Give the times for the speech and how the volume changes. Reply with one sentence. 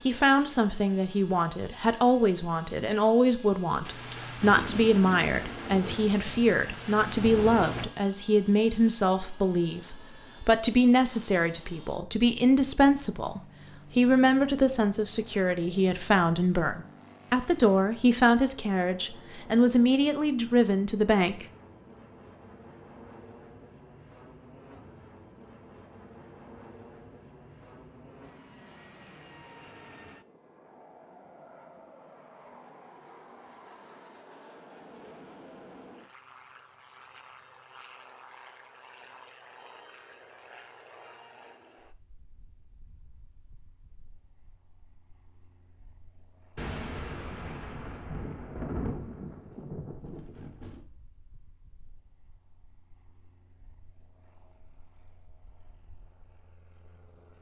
The speech can be heard from 0.1 to 21.4 s, at a steady volume.